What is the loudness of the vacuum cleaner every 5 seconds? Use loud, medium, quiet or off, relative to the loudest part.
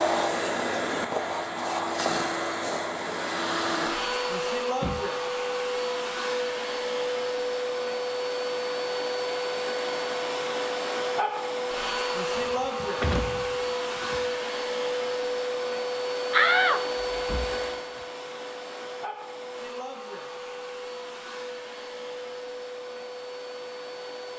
loud, loud, loud, loud, medium.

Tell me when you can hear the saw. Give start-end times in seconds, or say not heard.
not heard.